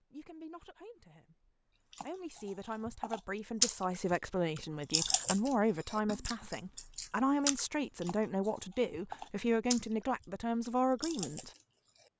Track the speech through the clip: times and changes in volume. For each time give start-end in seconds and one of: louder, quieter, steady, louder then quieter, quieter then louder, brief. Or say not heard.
0.1-11.5 louder.